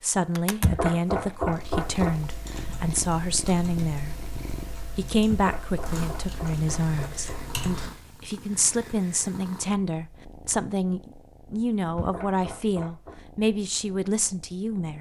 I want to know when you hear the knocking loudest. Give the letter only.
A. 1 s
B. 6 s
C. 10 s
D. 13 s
A.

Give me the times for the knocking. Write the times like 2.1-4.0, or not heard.
0.6-2.1, 5.3-7.4, 11.9-13.2.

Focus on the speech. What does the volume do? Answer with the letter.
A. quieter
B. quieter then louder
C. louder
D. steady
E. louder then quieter
D.